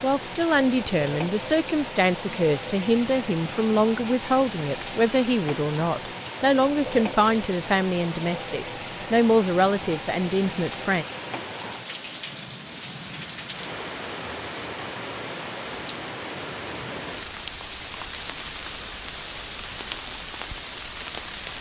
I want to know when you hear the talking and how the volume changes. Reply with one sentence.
You can hear the talking from 0.0 to 11.1 s, at a steady volume.